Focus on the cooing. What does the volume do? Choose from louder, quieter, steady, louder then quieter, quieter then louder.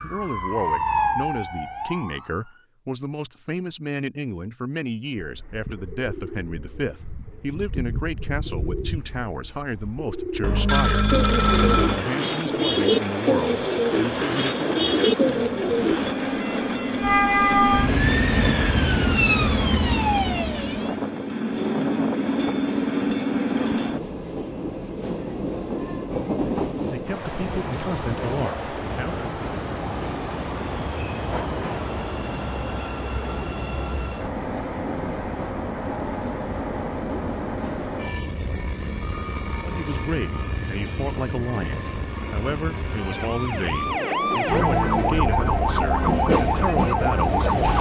louder.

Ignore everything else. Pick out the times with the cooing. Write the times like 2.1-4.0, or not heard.
5.2-16.1.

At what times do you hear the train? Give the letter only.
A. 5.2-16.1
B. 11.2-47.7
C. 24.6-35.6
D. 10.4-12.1
B.